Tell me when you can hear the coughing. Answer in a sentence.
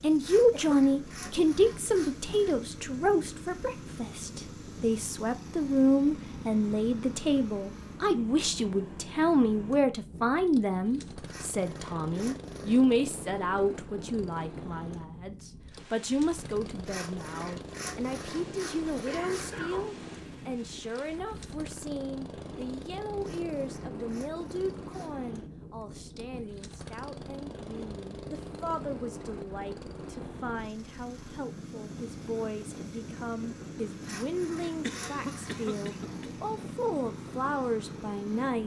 The coughing can be heard from 0.5 to 1.5 s, from 19.1 to 19.9 s and from 34.6 to 36.3 s.